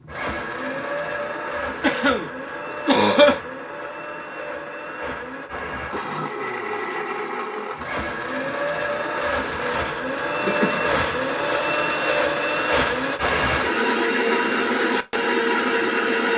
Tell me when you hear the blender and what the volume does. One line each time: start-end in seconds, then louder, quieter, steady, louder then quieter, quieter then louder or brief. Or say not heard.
0.0-16.3 louder.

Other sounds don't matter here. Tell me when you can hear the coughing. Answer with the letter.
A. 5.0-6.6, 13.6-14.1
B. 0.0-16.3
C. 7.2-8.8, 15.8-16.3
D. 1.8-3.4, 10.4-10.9
D.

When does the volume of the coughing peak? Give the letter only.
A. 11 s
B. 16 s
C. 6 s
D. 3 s
D.